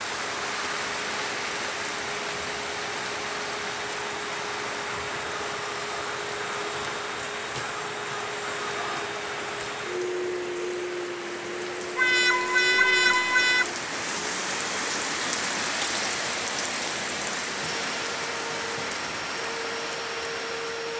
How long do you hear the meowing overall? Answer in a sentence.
You can hear the meowing for 2 seconds altogether.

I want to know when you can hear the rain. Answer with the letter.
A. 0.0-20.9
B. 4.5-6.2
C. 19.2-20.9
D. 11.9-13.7
A.